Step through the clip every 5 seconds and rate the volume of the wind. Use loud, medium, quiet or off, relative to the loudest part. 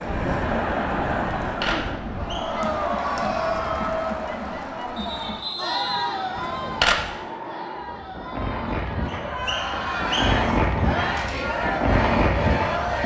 quiet, medium, loud.